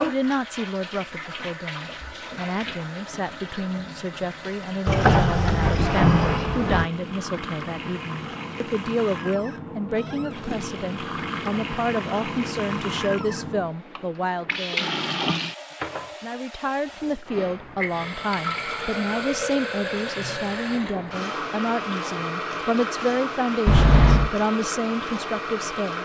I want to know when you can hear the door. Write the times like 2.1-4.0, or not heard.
4.8-6.8, 23.6-24.3.